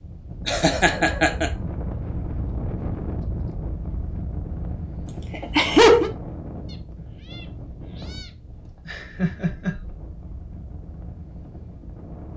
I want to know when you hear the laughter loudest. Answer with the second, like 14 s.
6 s.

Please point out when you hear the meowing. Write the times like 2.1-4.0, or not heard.
6.7-8.3.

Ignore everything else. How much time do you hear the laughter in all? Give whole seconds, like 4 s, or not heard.
3 s.